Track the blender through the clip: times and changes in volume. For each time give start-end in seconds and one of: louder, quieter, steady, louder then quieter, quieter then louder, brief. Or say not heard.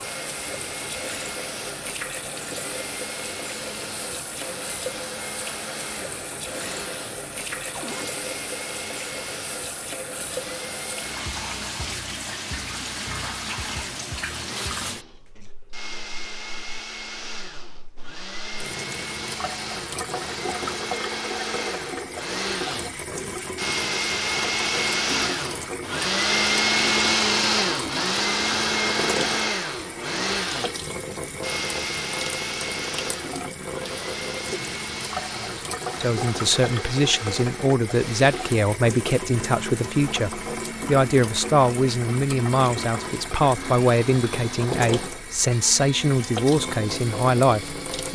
0.0-48.1 louder then quieter.